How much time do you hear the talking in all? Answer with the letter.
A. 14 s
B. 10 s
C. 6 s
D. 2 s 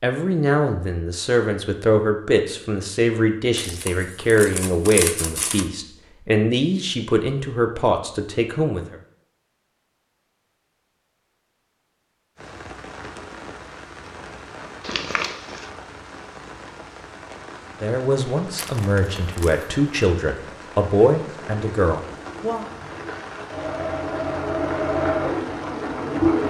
A.